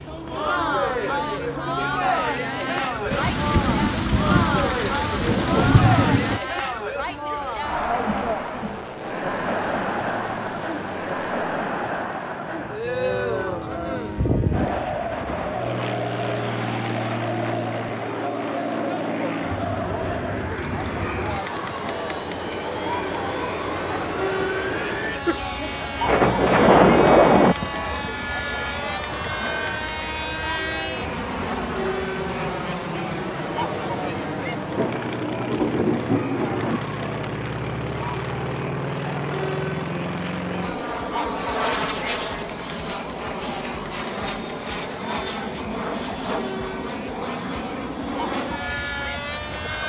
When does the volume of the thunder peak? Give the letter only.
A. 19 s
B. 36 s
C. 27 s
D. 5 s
C.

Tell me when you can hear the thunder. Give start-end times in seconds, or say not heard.
3.1-6.4, 26.0-27.6, 34.8-36.8.